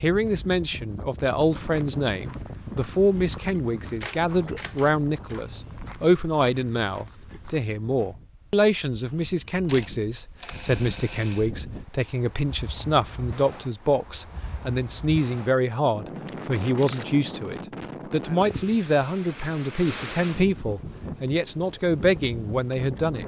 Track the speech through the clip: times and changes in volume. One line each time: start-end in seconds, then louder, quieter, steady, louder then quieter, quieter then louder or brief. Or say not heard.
0.0-23.2 steady.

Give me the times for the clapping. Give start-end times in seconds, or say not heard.
not heard.